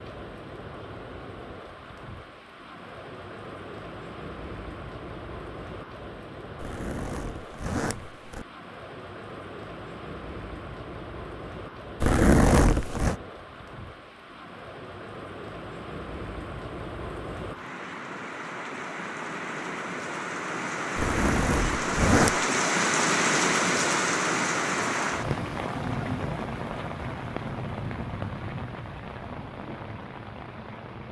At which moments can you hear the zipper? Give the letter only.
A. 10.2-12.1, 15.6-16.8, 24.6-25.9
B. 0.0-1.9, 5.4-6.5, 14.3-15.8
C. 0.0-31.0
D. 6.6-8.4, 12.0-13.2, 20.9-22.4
D.